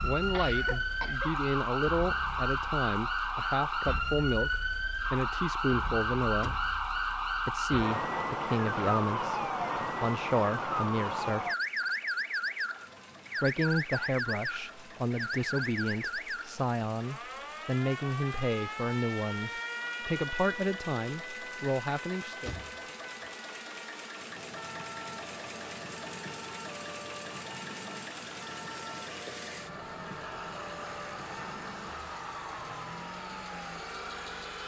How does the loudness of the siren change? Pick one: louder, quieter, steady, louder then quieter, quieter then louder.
quieter.